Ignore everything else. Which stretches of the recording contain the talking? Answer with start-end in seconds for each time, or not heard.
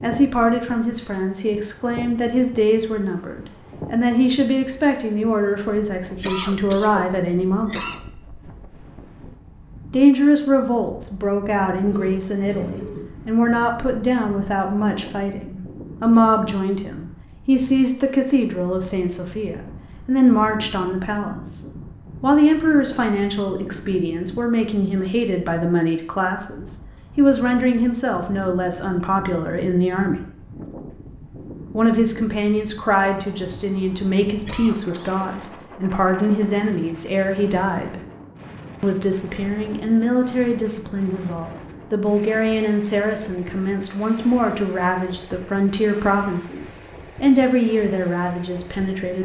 0.0-7.8, 9.9-30.2, 31.7-38.0, 38.8-49.1.